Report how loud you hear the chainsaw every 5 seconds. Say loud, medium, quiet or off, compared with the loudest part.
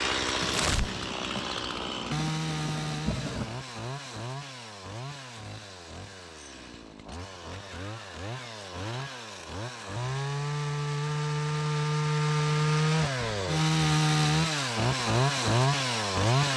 medium, quiet, loud, loud.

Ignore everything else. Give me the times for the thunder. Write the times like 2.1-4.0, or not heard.
0.3-3.5.